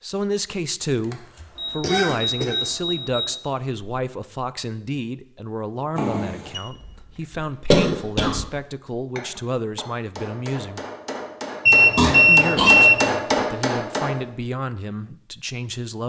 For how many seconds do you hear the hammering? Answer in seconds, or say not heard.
5 s.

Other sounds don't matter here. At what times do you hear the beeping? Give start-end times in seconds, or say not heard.
1.6-3.4, 6.0-6.6, 11.7-13.2.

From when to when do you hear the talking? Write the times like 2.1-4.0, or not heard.
0.0-10.8, 12.2-16.0.